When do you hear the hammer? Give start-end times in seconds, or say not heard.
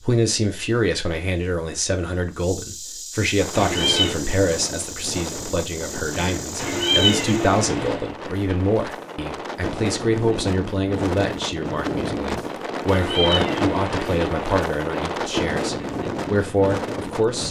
not heard.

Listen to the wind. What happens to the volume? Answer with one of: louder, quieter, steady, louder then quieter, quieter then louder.
louder.